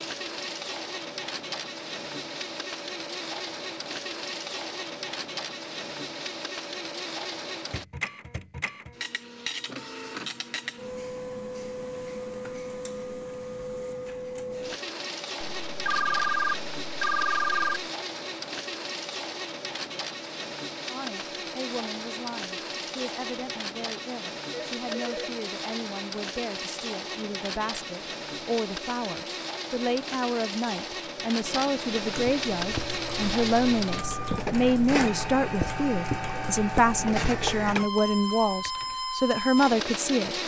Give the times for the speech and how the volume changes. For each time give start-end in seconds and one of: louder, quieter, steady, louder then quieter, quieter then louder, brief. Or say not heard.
20.9-40.4 louder.